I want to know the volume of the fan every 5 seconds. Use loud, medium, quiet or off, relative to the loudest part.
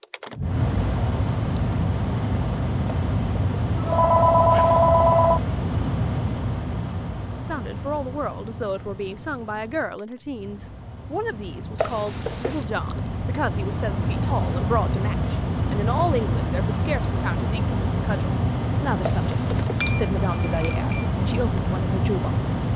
loud, medium, medium, loud, loud.